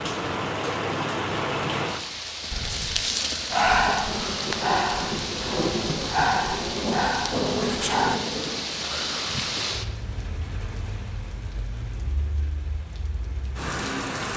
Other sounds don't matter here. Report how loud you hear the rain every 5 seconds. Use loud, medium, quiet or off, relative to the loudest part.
loud, loud, medium.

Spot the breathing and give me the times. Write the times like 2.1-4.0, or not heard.
2.5-8.2.